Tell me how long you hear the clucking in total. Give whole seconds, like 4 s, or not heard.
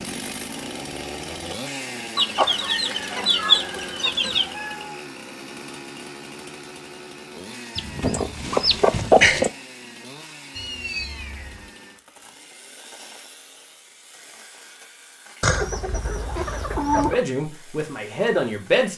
6 s.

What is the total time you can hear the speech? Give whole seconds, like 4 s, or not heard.
2 s.